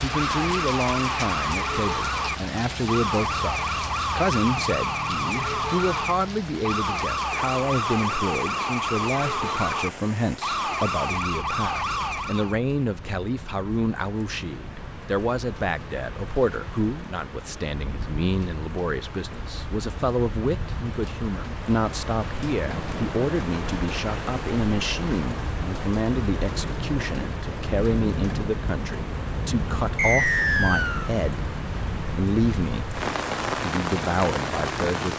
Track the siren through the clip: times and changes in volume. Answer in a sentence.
The siren can be heard from 0.0 to 12.6 s, at a steady volume.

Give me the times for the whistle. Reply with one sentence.
The whistle can be heard from 29.9 to 31.1 s.